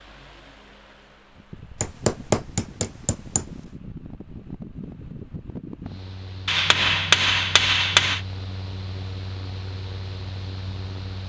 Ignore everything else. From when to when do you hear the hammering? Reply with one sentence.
You can hear the hammering from 1.8 to 3.5 s and from 6.5 to 8.2 s.